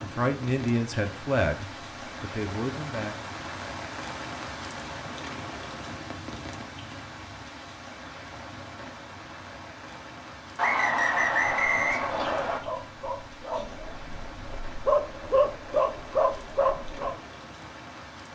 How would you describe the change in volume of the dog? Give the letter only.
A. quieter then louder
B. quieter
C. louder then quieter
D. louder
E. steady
D.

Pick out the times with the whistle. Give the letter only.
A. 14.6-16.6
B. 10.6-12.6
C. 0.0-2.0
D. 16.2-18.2
B.